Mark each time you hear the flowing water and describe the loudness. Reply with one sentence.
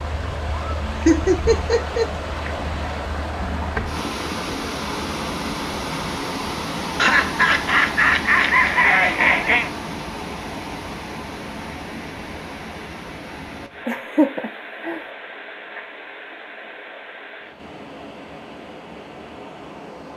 The flowing water can be heard from 0.0 to 20.1 s, getting quieter.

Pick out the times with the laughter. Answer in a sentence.
You can hear the laughter from 0.9 to 2.1 s, from 7.0 to 9.7 s and from 13.8 to 15.0 s.